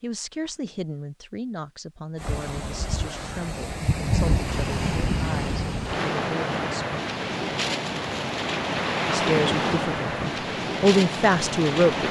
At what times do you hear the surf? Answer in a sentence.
The surf can be heard from 2.1 to 12.0 s.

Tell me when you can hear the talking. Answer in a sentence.
You can hear the talking from 0.0 to 7.2 s and from 9.1 to 12.0 s.